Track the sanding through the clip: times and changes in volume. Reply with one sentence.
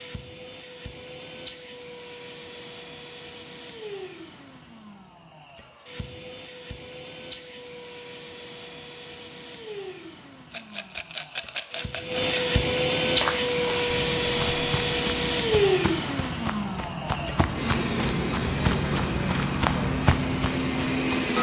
You can't hear the sanding here.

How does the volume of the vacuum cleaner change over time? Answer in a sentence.
The loudness of the vacuum cleaner goes up, then down.